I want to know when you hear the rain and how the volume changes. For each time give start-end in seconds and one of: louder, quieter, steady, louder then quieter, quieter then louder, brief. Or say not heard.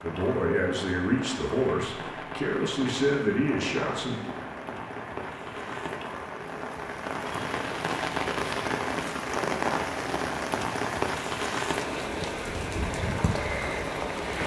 0.0-14.4 louder.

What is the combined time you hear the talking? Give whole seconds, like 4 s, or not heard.
4 s.